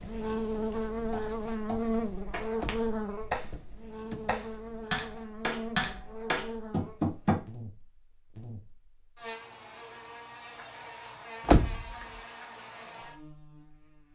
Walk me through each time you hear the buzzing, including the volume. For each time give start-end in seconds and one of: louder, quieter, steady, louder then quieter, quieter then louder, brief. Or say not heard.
0.0-14.1 quieter.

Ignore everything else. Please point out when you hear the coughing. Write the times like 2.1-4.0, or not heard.
not heard.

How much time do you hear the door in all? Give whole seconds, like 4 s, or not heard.
2 s.